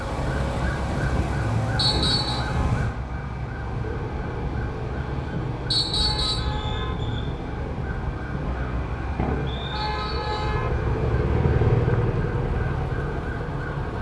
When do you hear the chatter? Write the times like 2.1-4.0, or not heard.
not heard.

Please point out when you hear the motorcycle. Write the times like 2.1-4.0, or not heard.
3.6-13.9.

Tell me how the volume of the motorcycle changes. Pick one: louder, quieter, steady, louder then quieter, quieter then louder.
louder.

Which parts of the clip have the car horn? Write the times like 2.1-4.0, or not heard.
1.8-2.8, 5.9-7.0, 9.7-10.7.